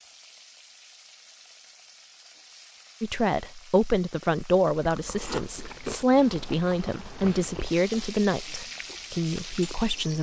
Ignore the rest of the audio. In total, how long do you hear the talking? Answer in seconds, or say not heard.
7 s.